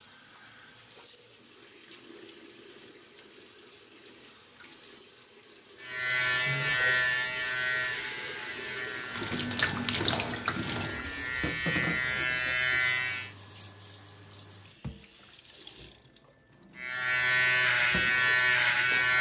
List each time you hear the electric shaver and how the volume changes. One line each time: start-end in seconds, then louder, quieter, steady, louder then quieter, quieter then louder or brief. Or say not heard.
5.8-13.3 quieter then louder
16.8-19.1 brief.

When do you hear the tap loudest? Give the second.
10 s.